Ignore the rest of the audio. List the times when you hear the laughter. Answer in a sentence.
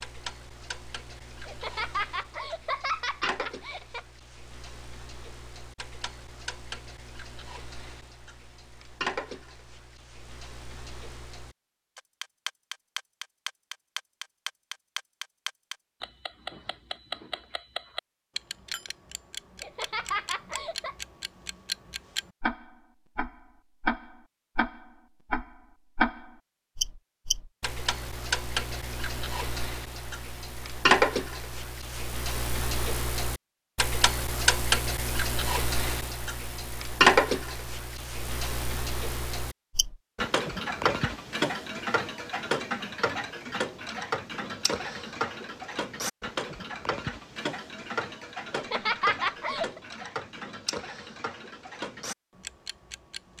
You can hear the laughter from 1.4 to 4.0 s, from 19.6 to 20.9 s and from 48.5 to 49.8 s.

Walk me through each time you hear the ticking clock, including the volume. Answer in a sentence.
You can hear the ticking clock from 0.0 to 53.3 s, getting louder then quieter.